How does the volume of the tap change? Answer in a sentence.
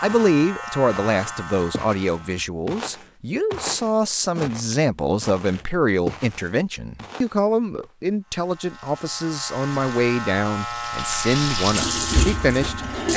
The loudness of the tap goes up.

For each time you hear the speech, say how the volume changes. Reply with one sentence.
The speech can be heard from 0.0 to 13.1 s, at a steady volume.